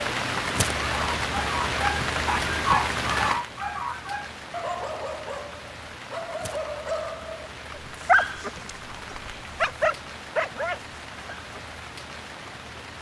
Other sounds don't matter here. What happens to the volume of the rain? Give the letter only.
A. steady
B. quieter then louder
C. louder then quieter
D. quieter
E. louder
D.